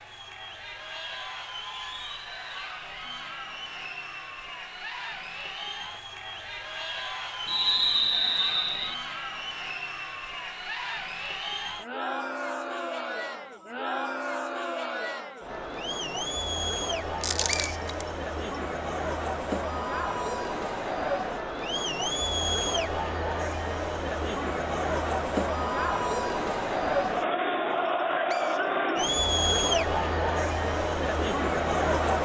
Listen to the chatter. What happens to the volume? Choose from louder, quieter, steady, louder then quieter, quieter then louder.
louder.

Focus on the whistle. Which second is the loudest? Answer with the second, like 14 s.
8 s.